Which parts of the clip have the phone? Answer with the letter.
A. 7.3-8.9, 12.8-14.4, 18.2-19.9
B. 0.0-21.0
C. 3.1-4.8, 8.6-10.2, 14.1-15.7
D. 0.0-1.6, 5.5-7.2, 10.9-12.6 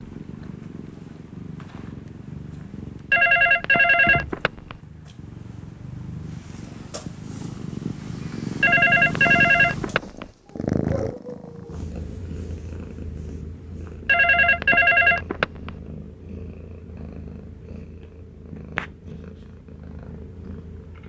C.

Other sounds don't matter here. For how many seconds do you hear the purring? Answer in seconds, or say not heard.
21 s.